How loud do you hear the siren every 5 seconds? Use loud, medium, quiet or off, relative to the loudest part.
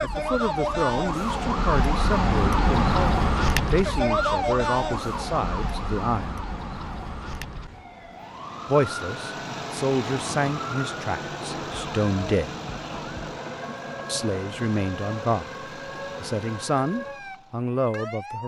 loud, medium, quiet, quiet.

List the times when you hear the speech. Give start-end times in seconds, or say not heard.
0.0-6.4, 8.7-12.6, 14.1-15.5, 16.2-18.4.